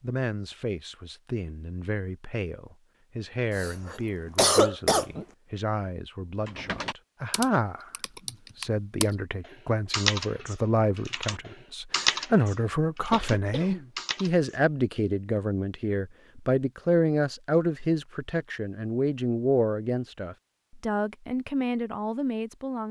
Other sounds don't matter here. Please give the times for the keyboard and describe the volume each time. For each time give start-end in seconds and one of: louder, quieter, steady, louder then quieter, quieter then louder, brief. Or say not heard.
6.5-14.6 louder then quieter.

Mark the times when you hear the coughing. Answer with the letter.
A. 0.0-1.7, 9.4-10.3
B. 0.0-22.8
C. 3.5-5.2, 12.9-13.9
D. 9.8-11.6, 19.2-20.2
C.